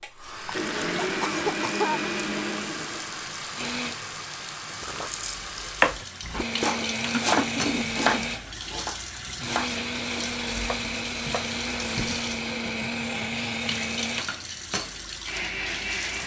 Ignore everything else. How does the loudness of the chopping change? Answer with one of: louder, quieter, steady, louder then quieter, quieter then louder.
louder then quieter.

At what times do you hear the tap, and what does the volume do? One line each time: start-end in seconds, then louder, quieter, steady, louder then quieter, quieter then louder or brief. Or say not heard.
0.0-16.2 steady.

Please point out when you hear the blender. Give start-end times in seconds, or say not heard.
0.0-4.0, 6.3-16.2.